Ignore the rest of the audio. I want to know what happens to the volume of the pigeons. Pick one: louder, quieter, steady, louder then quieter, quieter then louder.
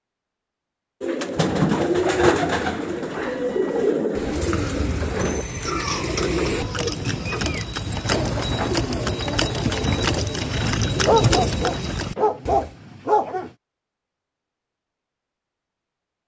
quieter.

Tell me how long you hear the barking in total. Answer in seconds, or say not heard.
3 s.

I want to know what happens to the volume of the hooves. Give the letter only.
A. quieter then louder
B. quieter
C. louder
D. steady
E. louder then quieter
C.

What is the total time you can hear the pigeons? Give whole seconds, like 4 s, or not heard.
11 s.